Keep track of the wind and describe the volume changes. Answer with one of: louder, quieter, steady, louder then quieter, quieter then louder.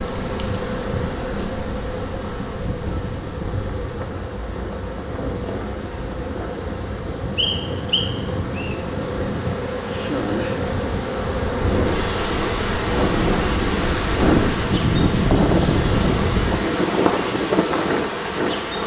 louder.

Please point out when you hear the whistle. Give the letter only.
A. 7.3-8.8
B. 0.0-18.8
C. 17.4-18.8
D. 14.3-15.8
A.